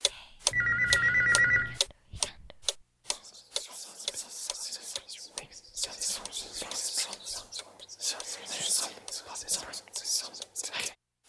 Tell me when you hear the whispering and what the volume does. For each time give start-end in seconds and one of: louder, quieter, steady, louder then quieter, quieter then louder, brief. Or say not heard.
0.1-10.9 louder.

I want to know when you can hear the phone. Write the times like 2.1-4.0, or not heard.
0.5-1.8.